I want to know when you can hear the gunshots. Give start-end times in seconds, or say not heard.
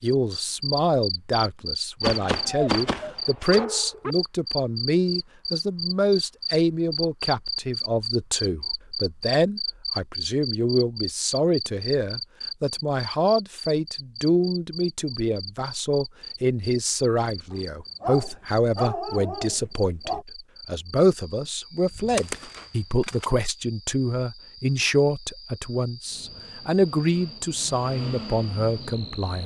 2.0-3.6, 21.9-23.4.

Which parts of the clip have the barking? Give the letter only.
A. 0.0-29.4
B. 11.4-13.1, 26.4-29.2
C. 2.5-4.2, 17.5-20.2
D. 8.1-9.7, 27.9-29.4
C.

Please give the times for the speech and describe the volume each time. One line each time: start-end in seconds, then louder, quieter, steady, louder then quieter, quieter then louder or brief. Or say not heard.
0.0-29.4 steady.